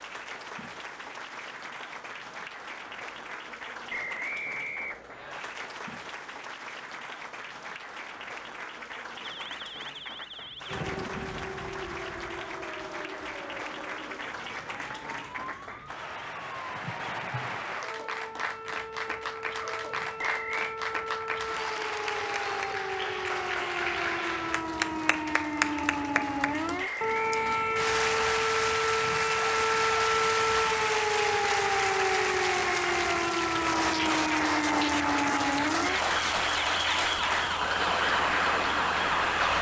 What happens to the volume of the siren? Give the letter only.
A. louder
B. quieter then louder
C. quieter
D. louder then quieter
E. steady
A.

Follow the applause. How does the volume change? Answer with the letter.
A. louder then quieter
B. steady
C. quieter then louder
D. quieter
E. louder
E.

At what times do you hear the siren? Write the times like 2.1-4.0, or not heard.
9.2-39.5.